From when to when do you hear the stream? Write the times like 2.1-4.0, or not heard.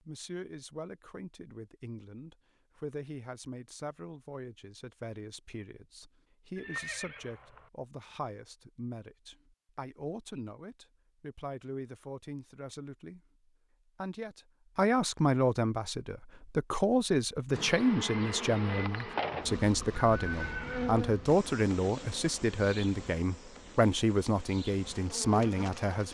not heard.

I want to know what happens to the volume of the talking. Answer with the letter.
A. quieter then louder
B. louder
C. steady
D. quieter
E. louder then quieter
B.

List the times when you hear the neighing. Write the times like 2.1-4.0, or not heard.
6.5-7.7, 20.1-20.9.